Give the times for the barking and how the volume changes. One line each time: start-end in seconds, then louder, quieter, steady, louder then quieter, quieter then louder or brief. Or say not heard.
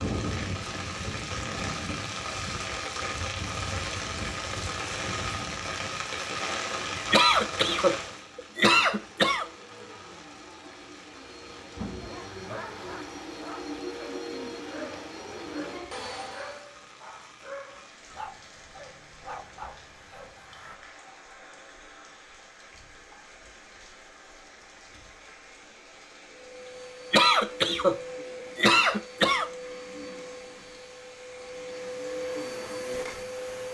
12.0-20.8 steady.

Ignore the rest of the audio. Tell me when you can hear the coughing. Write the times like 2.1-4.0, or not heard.
7.1-9.4, 27.1-29.5.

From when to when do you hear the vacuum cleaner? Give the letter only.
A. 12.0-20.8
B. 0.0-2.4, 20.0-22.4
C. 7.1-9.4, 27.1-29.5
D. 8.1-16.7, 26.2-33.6
D.